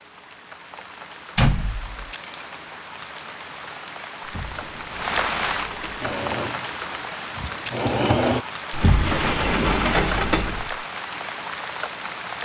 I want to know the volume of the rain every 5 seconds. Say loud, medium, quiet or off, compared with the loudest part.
medium, loud, loud.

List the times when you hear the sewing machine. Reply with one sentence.
You can hear the sewing machine from 6.0 to 8.4 s.